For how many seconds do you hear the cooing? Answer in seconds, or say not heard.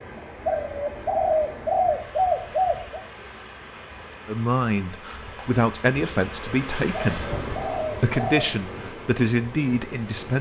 4 s.